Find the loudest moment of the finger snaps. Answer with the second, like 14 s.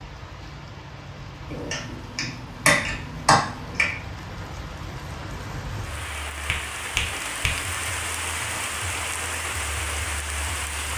3 s.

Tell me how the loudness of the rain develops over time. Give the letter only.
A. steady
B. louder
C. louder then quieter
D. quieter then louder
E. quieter
B.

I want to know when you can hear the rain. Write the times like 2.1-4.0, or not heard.
0.0-10.9.